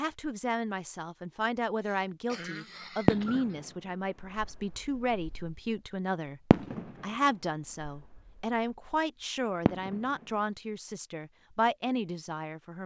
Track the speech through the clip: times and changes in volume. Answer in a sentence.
The speech can be heard from 0.0 to 12.8 s, at a steady volume.